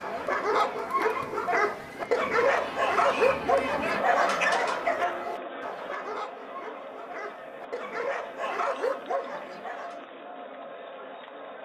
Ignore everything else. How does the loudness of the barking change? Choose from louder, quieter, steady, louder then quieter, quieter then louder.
quieter then louder.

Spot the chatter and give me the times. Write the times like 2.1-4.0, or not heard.
0.0-11.6.